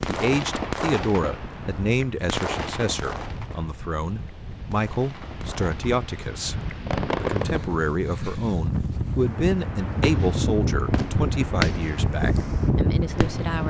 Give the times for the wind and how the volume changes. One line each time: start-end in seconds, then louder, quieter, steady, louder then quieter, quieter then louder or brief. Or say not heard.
0.0-13.6 louder.